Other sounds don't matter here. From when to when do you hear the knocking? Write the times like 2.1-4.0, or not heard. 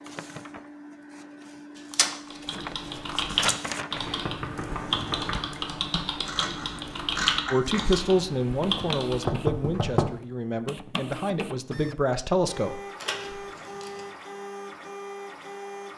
3.9-5.5, 9.2-10.2.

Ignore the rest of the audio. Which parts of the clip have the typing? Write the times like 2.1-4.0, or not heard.
2.3-9.4.